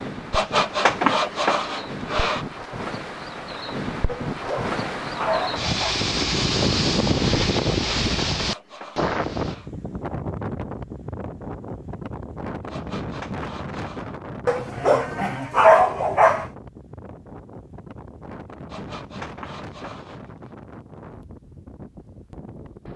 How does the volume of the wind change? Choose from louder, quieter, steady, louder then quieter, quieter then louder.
louder then quieter.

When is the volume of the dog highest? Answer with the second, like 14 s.
16 s.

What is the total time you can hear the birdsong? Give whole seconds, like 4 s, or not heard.
not heard.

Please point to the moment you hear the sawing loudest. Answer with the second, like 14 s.
1 s.